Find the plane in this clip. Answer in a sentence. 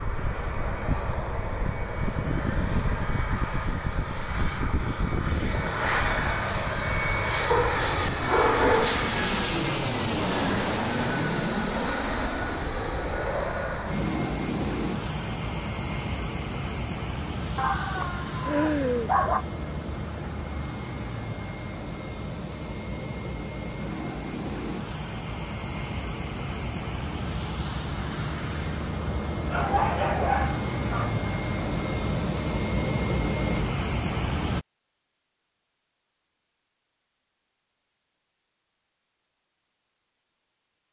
The plane can be heard from 0.0 to 34.6 s.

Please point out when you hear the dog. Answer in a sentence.
You can hear the dog from 7.5 to 9.1 s, from 17.6 to 19.4 s and from 29.5 to 31.1 s.